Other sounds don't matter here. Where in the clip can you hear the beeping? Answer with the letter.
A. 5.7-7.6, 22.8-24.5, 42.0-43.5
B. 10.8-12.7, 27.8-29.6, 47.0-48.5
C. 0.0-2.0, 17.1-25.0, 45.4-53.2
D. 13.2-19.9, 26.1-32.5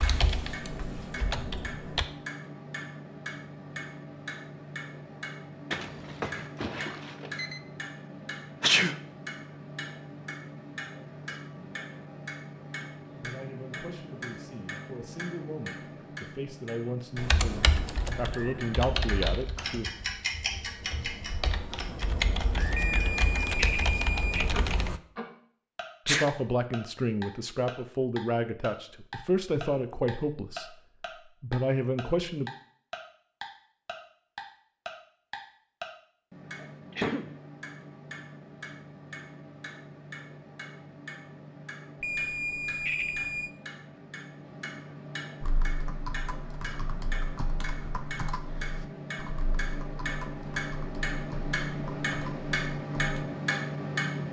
A.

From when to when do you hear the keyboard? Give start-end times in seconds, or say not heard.
0.0-2.0, 17.1-25.0, 45.4-53.2.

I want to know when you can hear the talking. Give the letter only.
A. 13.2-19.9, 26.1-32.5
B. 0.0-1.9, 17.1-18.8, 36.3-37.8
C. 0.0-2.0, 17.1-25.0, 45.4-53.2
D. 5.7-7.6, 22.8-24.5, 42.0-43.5
A.